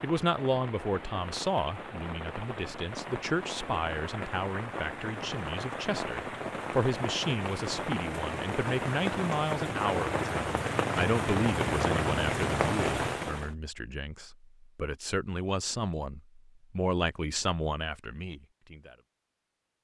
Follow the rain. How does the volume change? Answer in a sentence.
The loudness of the rain goes up.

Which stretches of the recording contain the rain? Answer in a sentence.
The rain can be heard from 0.0 to 13.6 s.